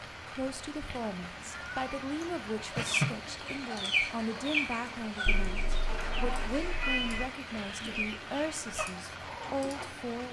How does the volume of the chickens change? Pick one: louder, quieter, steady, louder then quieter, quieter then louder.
quieter.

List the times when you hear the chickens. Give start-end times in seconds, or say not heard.
2.6-9.9.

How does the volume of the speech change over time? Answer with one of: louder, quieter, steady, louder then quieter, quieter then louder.
steady.